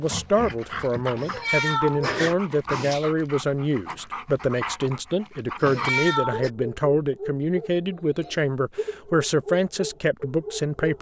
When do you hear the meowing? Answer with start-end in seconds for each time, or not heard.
1.2-3.1, 5.6-6.5.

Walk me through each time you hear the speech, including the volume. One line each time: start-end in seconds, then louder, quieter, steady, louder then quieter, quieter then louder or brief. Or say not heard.
0.0-10.9 steady.